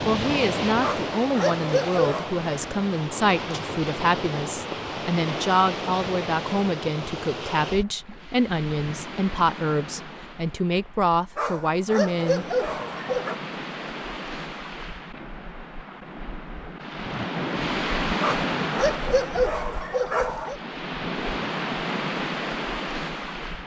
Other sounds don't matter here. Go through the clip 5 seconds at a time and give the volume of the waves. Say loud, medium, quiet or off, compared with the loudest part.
loud, loud, medium, loud, loud.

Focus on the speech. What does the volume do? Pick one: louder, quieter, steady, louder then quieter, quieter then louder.
steady.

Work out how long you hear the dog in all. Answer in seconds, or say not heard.
6 s.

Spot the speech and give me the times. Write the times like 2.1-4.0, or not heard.
0.1-12.4.